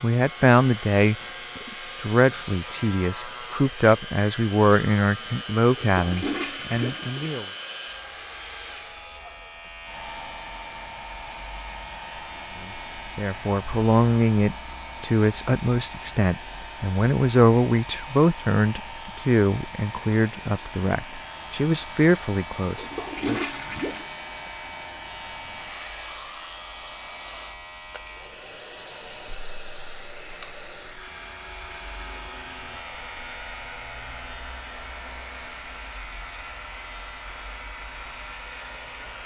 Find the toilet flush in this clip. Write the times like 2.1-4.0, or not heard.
5.8-7.5, 22.8-24.1.